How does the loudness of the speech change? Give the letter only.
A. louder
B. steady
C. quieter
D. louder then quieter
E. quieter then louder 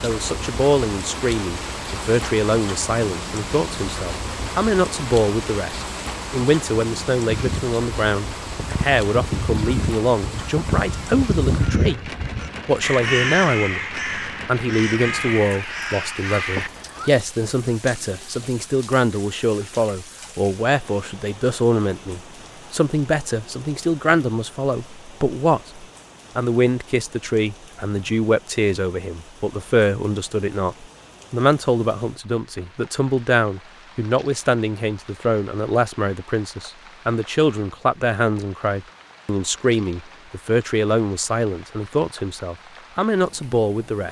B.